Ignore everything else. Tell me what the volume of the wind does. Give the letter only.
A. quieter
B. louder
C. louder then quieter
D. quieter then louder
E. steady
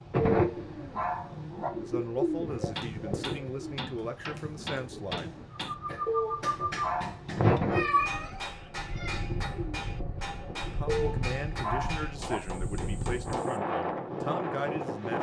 B.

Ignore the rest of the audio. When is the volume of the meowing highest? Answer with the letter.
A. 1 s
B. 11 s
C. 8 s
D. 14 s
C.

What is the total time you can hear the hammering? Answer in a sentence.
You can hear the hammering for 11 seconds altogether.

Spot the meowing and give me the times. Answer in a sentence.
The meowing can be heard from 7.7 to 9.2 s.